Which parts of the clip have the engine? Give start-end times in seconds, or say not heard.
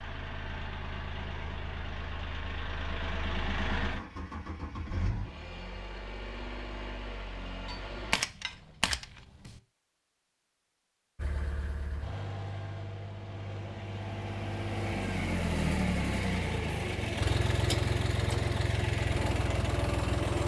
0.0-8.2, 11.2-20.4.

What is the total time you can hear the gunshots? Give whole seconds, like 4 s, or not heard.
2 s.